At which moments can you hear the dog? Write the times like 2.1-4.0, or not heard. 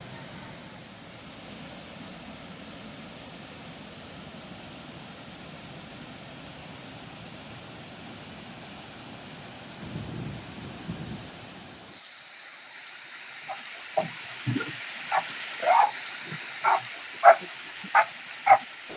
13.5-18.9.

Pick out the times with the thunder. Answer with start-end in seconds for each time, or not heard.
9.8-11.3.